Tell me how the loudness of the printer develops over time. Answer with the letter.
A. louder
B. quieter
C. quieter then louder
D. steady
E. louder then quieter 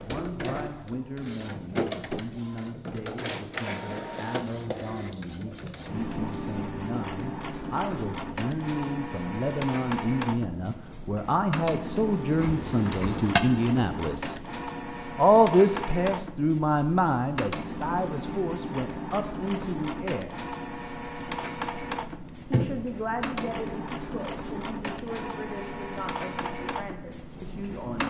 D.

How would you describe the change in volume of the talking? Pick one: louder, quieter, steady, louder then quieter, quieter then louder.
louder then quieter.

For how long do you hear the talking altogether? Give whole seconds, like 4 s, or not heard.
25 s.